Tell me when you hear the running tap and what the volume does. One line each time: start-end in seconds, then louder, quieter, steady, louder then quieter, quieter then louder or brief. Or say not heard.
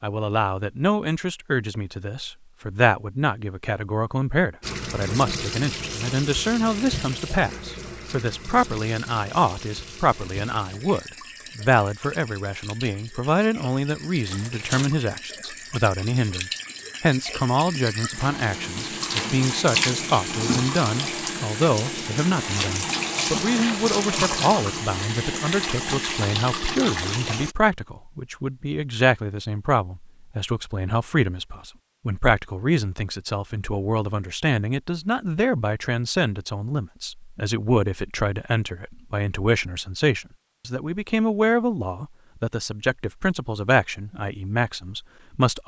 4.6-27.6 quieter then louder.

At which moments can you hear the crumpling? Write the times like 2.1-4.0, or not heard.
14.2-14.9.